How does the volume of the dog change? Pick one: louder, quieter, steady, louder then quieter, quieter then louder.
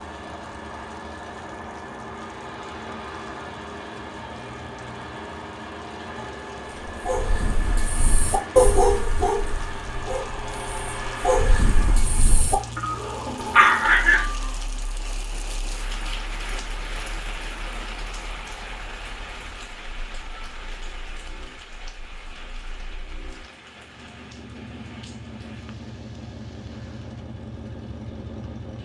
quieter then louder.